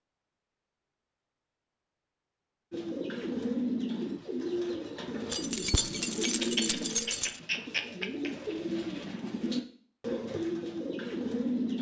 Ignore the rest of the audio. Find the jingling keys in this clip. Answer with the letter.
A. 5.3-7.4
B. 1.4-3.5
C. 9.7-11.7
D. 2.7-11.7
A.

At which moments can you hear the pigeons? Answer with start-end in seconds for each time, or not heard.
2.7-11.7.